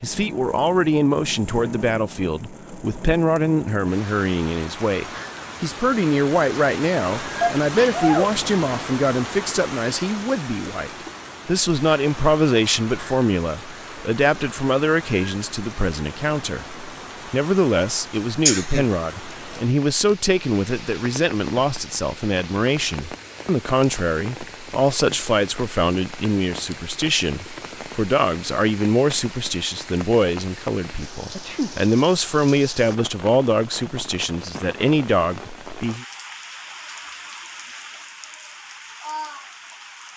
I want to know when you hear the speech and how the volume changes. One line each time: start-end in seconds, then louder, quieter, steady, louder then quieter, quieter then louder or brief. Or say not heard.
0.0-36.0 steady.